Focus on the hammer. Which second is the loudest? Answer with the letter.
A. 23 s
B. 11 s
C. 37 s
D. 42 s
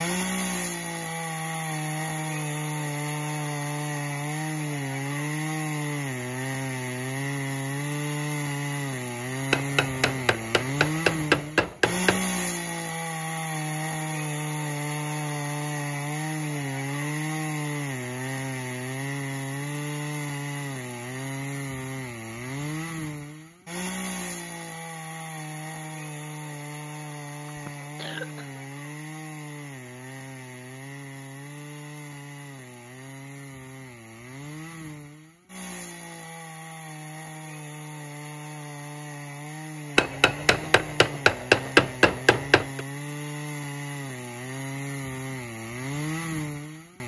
D.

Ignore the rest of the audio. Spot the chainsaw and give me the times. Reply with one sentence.
The chainsaw can be heard from 0.0 to 47.0 s.